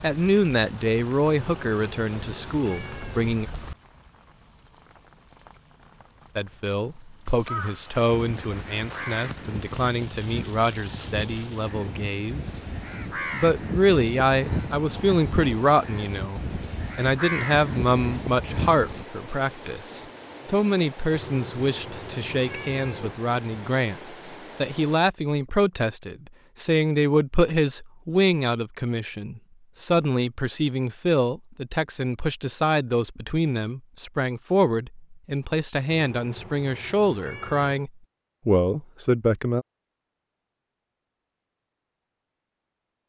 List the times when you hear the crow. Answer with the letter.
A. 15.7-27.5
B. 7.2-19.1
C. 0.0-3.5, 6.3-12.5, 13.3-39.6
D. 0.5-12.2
B.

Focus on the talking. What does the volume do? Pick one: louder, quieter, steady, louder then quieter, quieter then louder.
steady.